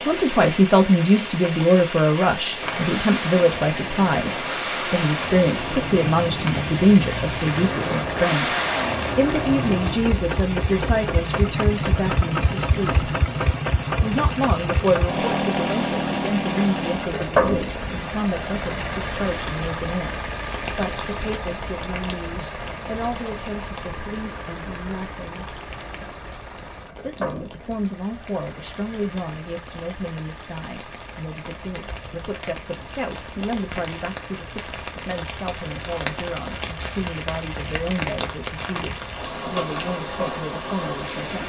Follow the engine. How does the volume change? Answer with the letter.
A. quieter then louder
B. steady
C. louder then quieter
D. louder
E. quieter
E.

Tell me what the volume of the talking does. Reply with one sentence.
The loudness of the talking goes down.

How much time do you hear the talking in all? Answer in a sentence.
You can hear the talking for 38 seconds altogether.